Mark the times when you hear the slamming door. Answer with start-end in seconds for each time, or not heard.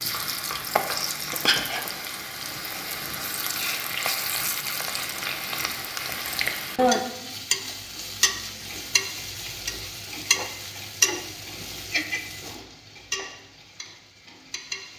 not heard.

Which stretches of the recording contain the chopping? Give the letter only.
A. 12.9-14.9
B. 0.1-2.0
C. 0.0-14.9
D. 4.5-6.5
B.